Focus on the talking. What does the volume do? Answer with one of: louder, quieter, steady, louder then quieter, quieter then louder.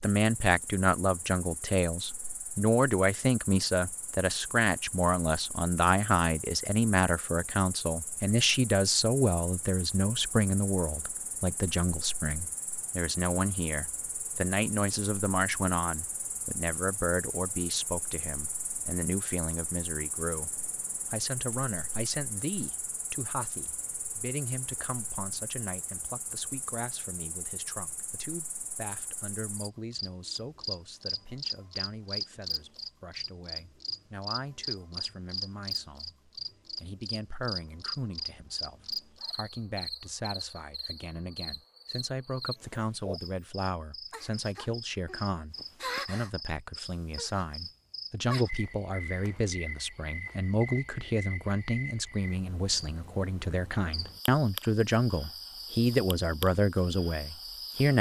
quieter then louder.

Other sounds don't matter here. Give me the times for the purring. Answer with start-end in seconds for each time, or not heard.
not heard.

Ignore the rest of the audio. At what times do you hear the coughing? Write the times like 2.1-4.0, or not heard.
not heard.